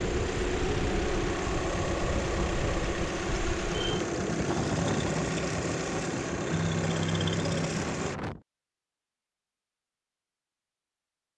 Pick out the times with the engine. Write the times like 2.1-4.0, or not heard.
0.0-8.2.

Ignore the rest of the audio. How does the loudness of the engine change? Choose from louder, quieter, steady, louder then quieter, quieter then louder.
steady.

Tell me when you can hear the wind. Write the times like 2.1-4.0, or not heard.
0.0-8.4.